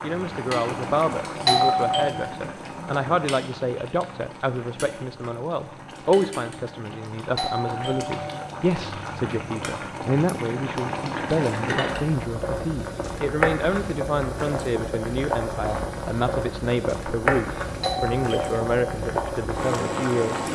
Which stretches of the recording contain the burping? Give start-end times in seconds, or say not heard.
not heard.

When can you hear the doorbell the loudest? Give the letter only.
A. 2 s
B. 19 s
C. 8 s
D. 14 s
A.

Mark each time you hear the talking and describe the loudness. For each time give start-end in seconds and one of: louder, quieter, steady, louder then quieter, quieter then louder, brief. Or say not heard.
0.0-20.4 steady.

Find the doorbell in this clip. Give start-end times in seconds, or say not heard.
1.4-2.1, 7.3-8.4, 17.8-18.7.